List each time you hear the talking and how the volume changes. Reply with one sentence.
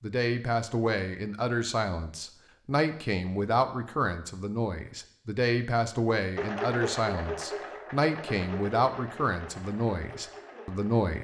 You can hear the talking from 0.0 to 11.1 s, at a steady volume.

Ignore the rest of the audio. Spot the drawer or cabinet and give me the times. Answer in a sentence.
You can't hear the drawer or cabinet here.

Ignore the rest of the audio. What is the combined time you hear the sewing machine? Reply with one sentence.
The sewing machine can be heard for 5 seconds in total.